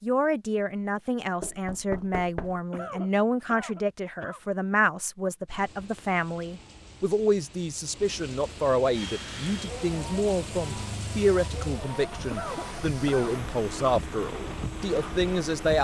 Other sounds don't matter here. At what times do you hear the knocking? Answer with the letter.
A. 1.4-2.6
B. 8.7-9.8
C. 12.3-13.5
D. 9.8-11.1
A.